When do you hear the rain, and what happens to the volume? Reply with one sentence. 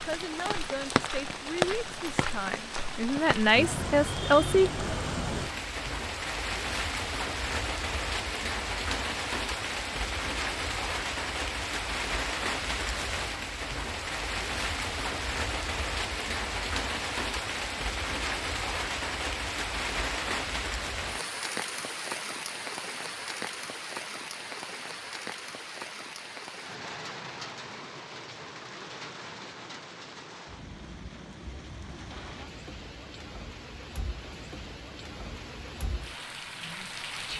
You can hear the rain from 0.0 to 37.3 s, getting quieter.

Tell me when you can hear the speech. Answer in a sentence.
You can hear the speech from 0.0 to 4.7 s.